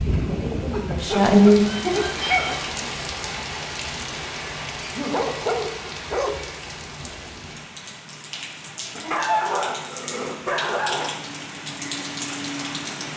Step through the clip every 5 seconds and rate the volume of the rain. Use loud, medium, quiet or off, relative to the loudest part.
loud, medium, loud.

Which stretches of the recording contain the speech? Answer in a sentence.
You can hear the speech from 0.1 to 1.6 s.